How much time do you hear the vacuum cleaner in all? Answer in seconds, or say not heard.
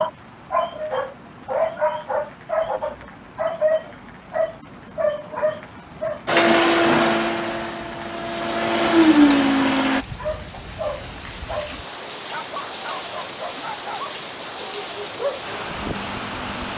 4 s.